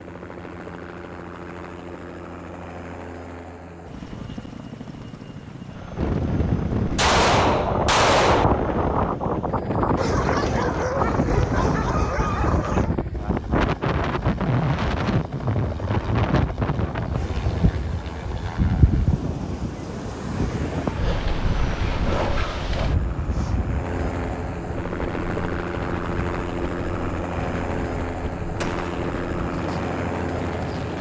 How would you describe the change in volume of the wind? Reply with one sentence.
The volume of the wind goes down.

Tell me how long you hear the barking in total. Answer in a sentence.
You can hear the barking for 3 seconds altogether.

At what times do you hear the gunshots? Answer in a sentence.
The gunshots can be heard from 7.0 to 8.4 s and from 28.6 to 29.1 s.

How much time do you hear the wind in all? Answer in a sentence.
You can hear the wind for 25 seconds altogether.